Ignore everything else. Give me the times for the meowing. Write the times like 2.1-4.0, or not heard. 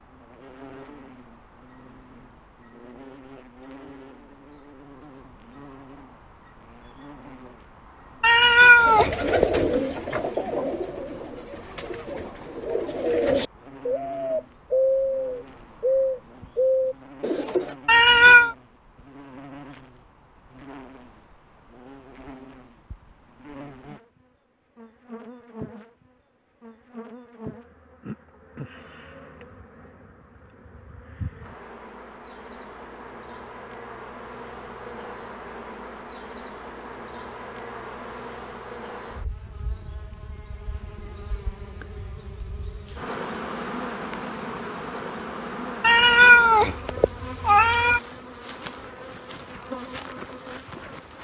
8.2-9.7, 17.9-18.6, 45.8-48.0.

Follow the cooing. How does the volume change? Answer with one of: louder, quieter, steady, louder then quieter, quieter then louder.
quieter then louder.